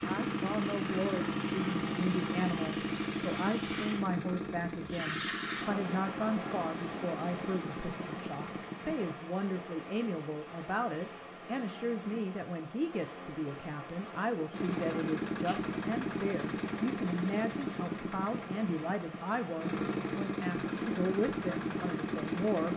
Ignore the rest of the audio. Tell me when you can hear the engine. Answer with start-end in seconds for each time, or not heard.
0.0-9.2, 14.5-22.7.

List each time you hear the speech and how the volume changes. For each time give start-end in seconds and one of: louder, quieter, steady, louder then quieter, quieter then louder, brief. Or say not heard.
0.0-22.7 steady.